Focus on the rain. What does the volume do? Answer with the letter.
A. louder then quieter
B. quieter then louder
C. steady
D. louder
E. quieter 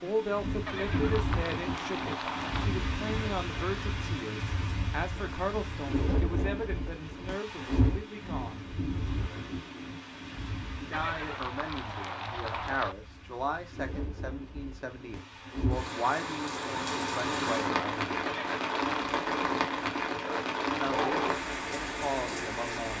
B.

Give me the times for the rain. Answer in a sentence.
The rain can be heard from 0.0 to 22.9 s.